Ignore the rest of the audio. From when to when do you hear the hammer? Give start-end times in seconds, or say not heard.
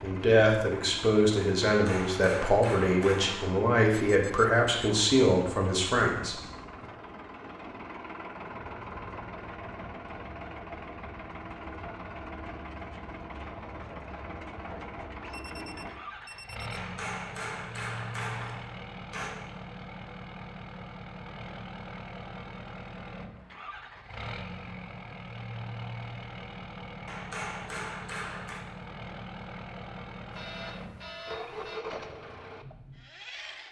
1.6-3.5, 16.7-19.4, 27.1-28.6.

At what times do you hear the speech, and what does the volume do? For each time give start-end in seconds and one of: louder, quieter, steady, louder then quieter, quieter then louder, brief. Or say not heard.
0.0-6.8 steady.